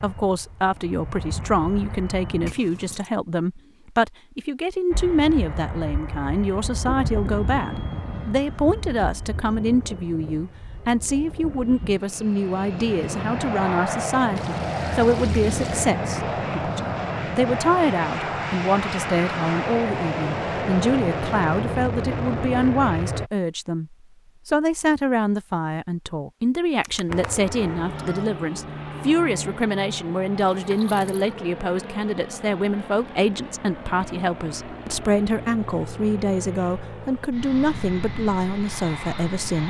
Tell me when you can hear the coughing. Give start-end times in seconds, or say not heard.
not heard.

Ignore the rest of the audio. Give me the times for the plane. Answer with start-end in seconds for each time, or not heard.
0.0-2.5, 4.9-23.3, 27.1-39.6.